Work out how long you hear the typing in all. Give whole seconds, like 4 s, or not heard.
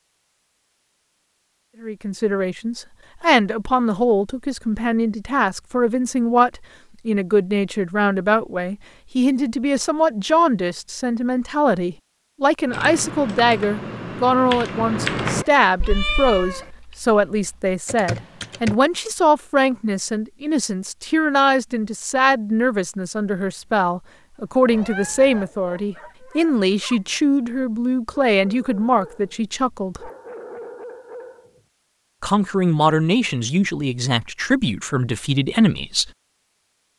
6 s.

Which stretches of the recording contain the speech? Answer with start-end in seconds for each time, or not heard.
1.8-30.1, 32.2-36.1.